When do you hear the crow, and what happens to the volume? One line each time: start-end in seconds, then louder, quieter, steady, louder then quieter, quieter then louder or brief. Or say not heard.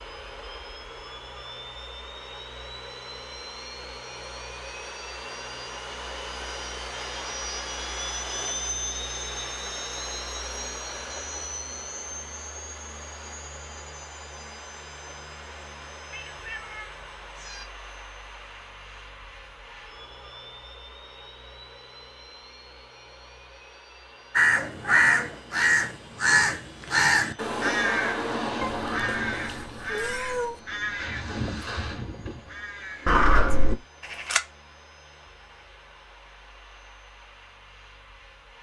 24.4-34.4 quieter then louder.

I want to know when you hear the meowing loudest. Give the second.
30 s.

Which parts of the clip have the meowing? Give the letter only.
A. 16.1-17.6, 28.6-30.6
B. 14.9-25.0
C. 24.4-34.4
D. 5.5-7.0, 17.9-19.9
A.